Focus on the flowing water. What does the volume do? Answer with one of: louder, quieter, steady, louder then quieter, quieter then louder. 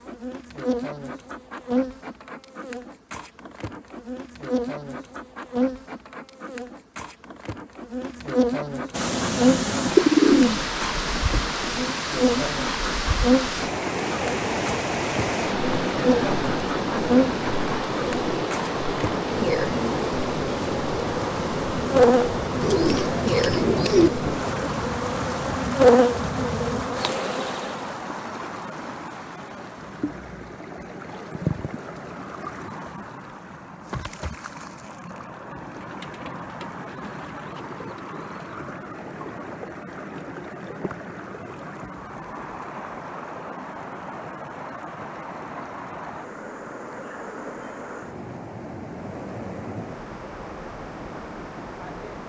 quieter.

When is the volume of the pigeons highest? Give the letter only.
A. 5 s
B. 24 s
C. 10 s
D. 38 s
C.